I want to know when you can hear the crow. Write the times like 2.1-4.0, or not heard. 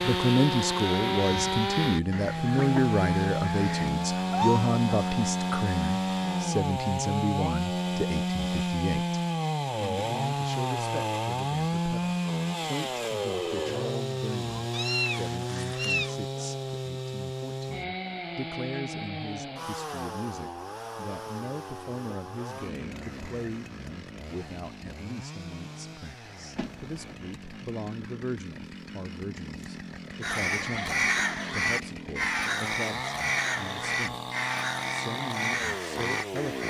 0.0-3.9, 30.2-36.6.